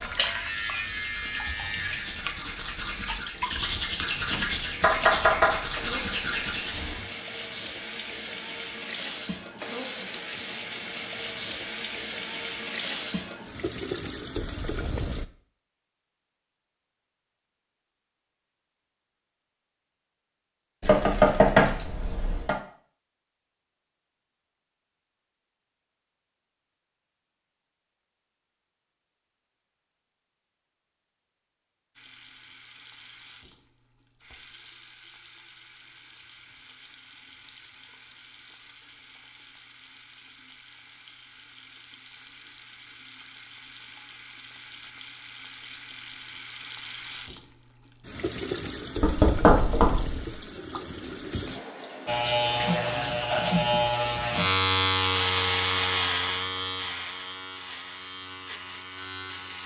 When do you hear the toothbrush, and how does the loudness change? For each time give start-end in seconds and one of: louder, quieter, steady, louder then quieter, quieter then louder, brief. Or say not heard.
0.0-7.0 louder.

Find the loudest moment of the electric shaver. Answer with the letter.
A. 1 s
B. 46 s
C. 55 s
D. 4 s
C.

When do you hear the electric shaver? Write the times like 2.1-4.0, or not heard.
0.0-3.2, 52.0-59.6.